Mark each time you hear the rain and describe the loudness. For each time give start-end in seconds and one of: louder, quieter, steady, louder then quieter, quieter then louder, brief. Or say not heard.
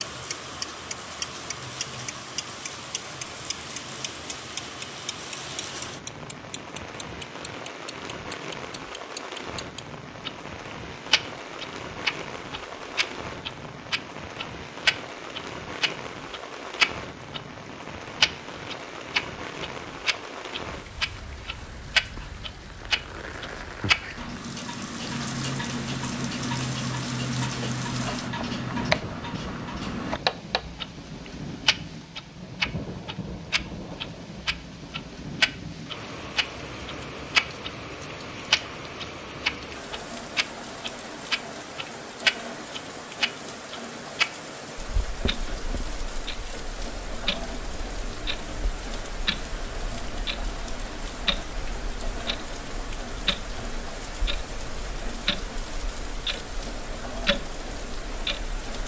0.0-58.8 steady.